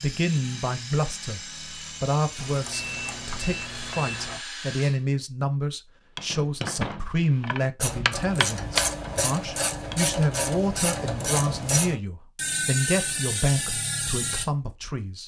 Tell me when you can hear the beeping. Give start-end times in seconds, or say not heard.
2.4-4.4.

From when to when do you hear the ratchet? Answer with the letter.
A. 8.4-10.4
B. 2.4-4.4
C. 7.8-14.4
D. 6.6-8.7
C.